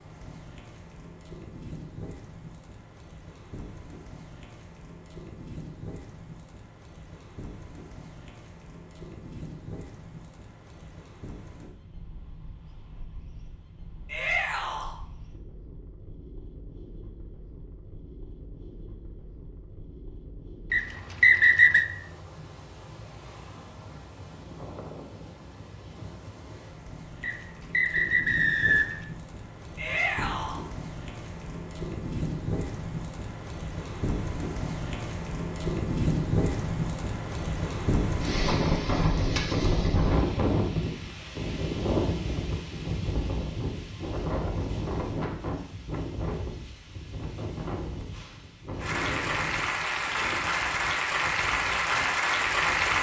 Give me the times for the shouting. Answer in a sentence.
You can hear the shouting from 14.1 to 14.9 s and from 29.8 to 30.6 s.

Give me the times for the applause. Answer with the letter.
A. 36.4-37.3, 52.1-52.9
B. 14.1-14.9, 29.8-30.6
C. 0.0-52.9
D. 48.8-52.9
D.